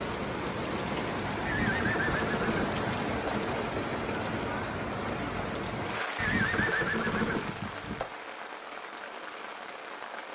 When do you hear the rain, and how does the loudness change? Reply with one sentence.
The rain can be heard from 0.0 to 10.3 s, getting quieter.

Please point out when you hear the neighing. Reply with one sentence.
The neighing can be heard from 1.4 to 3.4 s and from 6.2 to 8.1 s.